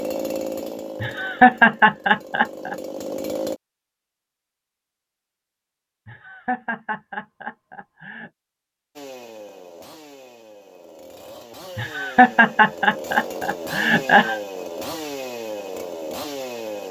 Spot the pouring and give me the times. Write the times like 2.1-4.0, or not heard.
not heard.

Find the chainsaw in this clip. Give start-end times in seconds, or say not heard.
0.0-3.6, 8.9-16.8.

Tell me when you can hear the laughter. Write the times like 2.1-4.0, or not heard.
1.0-2.8, 6.0-8.3, 11.8-14.4.